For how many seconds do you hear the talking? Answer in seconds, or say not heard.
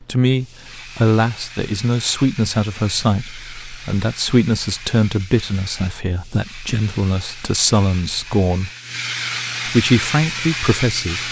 10 s.